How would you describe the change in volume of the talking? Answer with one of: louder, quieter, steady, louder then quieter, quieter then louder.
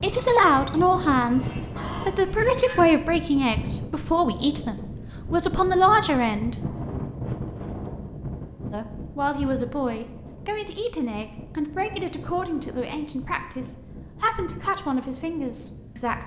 quieter.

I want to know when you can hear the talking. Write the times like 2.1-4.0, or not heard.
0.0-6.5, 8.7-16.2.